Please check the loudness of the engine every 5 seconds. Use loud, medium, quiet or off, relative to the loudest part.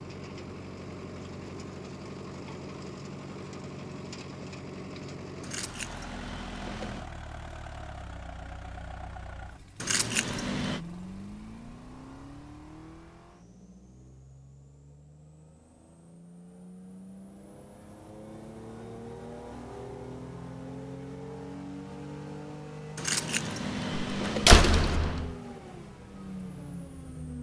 loud, loud, medium, medium, loud, loud.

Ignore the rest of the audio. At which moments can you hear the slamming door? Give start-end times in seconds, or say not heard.
24.1-25.4.